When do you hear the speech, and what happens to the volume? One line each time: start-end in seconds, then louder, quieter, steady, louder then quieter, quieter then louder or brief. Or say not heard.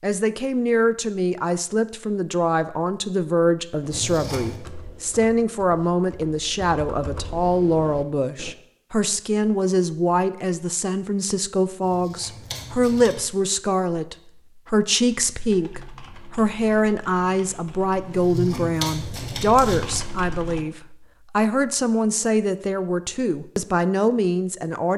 0.0-24.9 steady.